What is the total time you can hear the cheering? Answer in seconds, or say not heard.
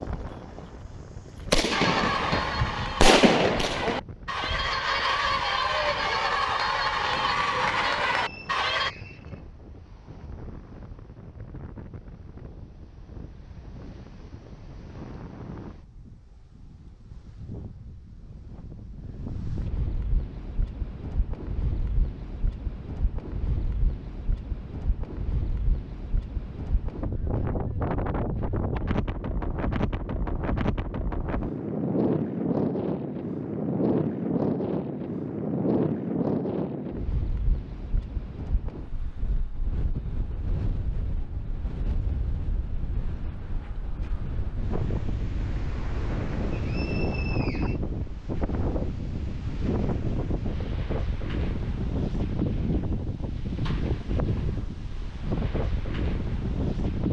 7 s.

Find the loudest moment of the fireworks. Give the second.
3 s.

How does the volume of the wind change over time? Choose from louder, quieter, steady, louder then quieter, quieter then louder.
louder.